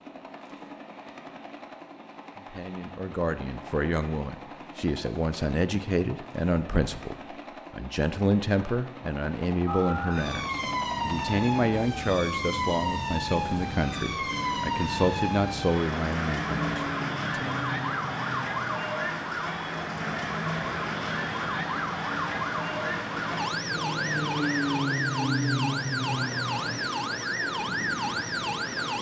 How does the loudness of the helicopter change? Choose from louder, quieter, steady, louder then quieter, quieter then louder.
louder.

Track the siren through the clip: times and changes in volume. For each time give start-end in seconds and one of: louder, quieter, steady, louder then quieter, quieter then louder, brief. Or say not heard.
9.7-28.9 steady.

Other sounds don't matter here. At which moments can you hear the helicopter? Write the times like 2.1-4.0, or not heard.
0.0-28.9.